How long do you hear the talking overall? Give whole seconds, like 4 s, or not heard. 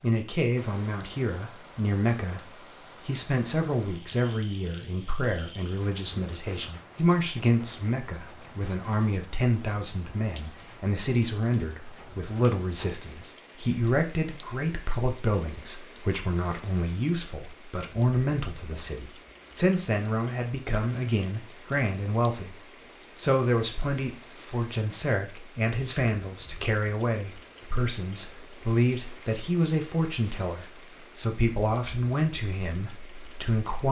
34 s.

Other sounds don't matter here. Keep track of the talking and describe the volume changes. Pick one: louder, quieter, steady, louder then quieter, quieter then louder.
steady.